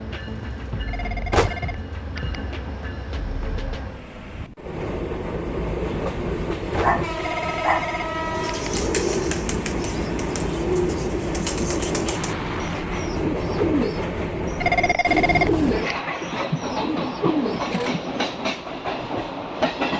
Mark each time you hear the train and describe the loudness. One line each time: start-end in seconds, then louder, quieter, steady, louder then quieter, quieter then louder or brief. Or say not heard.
0.0-19.9 louder.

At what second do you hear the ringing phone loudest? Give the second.
15 s.